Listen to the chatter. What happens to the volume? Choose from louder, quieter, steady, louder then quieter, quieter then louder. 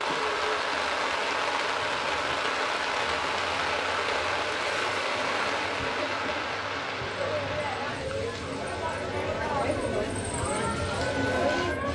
louder.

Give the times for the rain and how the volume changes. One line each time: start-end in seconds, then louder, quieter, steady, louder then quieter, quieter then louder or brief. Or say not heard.
0.0-11.9 quieter.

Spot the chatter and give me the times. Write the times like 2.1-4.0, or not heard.
0.0-11.9.